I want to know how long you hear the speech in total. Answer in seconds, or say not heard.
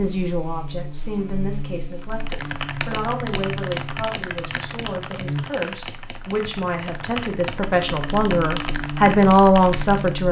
10 s.